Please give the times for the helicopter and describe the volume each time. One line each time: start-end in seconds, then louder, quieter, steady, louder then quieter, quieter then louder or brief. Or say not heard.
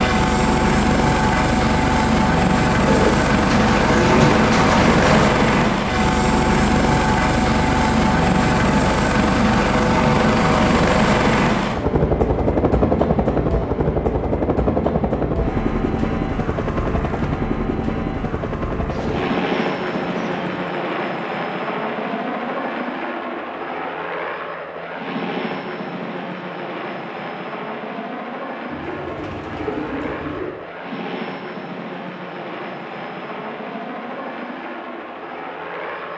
0.0-36.1 quieter.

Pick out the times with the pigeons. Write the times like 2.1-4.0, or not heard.
2.9-5.3, 18.9-20.7, 28.6-30.6.